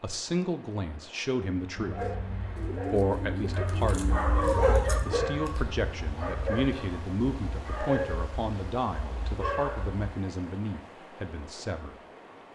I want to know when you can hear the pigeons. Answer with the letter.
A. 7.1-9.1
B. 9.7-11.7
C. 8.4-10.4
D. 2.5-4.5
D.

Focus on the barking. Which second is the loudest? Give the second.
5 s.